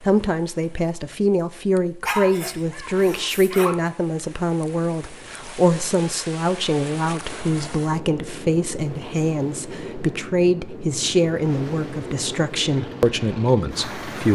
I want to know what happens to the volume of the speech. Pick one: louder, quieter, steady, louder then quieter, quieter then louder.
steady.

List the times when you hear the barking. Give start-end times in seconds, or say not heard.
2.0-3.8.